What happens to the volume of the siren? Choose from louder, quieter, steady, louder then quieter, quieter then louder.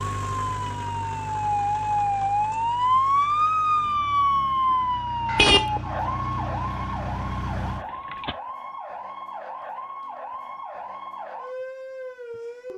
quieter.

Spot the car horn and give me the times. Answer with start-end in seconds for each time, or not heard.
5.2-5.7.